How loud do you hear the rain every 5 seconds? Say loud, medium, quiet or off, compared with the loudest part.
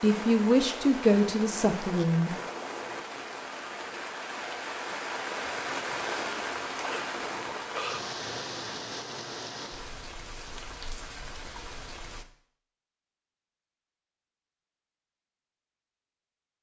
loud, loud, medium, off.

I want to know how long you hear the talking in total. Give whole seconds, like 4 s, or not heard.
2 s.